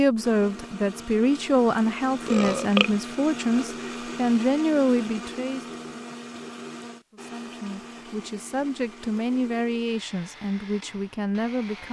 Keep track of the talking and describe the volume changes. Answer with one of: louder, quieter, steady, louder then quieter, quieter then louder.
quieter.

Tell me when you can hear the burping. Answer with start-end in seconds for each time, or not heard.
2.2-2.9.